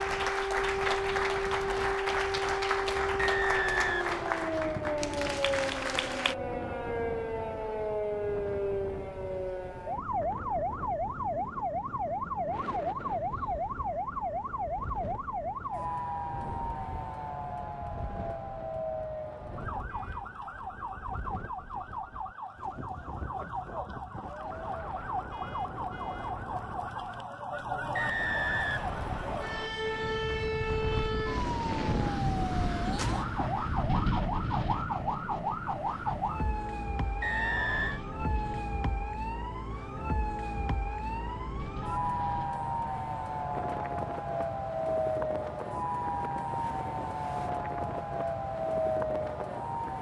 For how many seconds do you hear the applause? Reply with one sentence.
You can hear the applause for 6 seconds altogether.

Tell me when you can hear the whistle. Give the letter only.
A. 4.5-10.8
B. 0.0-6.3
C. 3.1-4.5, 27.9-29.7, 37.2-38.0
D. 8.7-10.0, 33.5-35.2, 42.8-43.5
C.